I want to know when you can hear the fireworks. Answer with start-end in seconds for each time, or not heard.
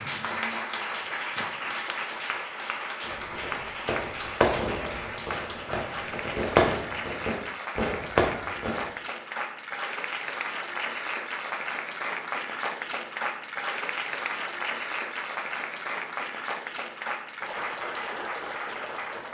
3.0-8.9.